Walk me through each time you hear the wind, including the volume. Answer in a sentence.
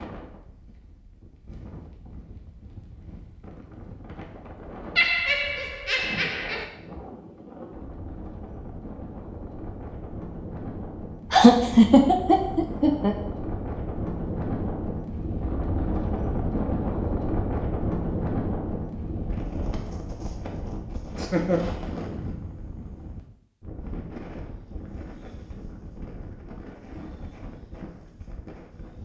The wind can be heard from 0.0 to 28.9 s, getting louder then quieter.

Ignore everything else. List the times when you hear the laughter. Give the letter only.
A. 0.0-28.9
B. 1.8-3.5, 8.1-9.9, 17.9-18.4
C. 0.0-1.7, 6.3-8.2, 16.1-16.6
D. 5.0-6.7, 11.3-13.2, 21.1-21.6
D.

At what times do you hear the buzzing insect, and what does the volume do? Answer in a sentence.
You can't hear the buzzing insect here.